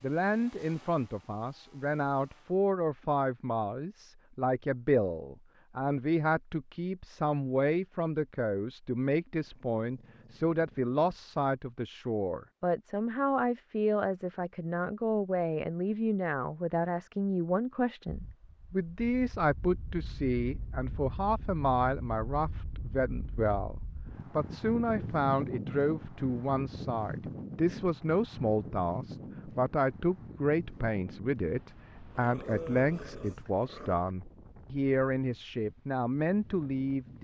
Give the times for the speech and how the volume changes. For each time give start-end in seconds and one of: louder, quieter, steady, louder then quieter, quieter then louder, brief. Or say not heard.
0.0-37.1 steady.